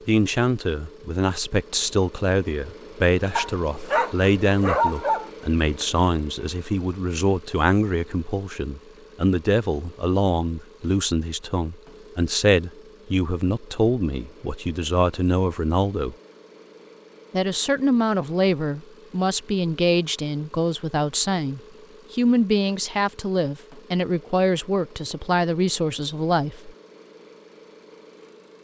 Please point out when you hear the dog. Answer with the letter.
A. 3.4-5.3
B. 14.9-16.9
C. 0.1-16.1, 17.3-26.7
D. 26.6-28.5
A.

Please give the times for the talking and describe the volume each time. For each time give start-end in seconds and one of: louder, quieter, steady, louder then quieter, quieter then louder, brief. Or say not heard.
0.1-16.1 steady
17.3-26.7 steady.